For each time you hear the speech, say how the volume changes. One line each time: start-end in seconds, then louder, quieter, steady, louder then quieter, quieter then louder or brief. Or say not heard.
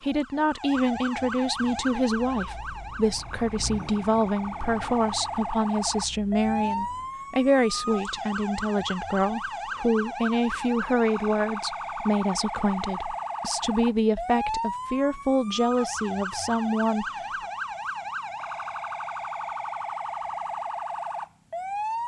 0.0-17.1 steady.